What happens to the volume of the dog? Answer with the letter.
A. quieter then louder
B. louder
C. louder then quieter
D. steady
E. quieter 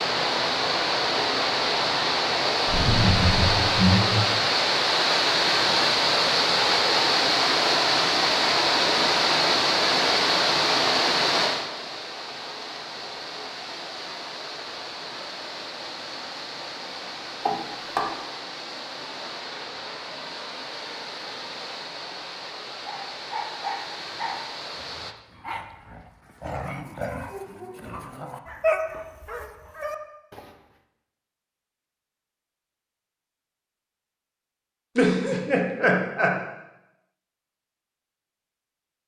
A.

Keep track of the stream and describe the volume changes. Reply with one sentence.
The volume of the stream goes down.